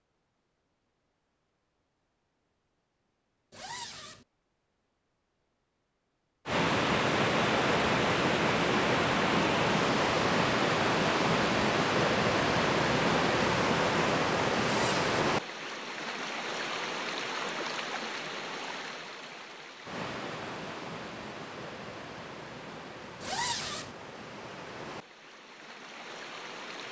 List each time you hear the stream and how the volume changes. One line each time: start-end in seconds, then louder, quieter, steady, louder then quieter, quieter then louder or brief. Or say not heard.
6.5-26.8 quieter.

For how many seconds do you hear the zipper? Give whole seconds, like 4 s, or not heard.
2 s.